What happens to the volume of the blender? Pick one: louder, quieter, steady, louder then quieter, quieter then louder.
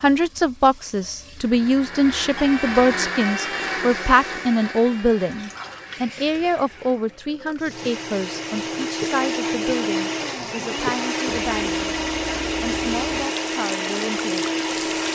quieter then louder.